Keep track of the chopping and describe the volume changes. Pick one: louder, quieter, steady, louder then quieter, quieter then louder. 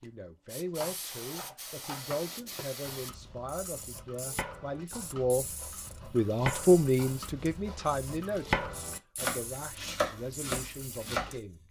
louder.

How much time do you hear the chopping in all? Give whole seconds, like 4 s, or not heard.
11 s.